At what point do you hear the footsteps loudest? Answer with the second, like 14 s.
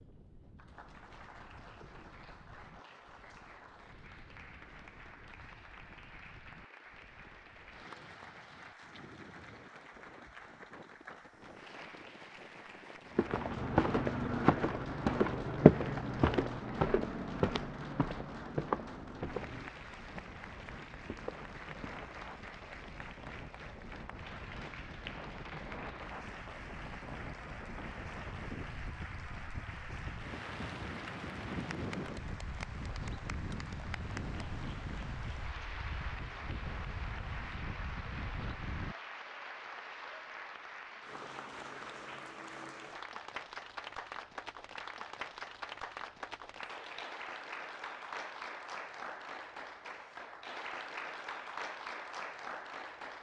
16 s.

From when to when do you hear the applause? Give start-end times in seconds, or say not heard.
0.0-53.1.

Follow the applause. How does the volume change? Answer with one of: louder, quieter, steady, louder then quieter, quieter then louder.
louder.